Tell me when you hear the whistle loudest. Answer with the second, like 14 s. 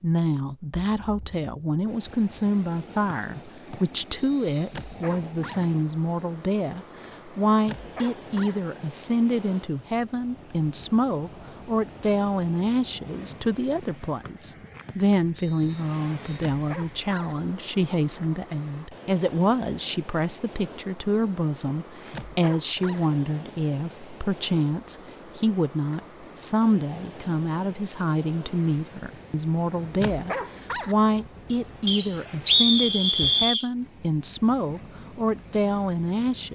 33 s.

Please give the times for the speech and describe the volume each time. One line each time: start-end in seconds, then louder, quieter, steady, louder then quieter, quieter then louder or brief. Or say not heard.
0.0-36.5 steady.